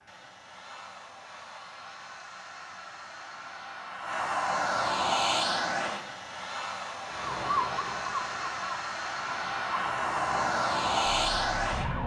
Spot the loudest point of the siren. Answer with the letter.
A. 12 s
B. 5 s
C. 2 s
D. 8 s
D.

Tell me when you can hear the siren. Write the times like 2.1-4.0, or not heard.
7.1-12.0.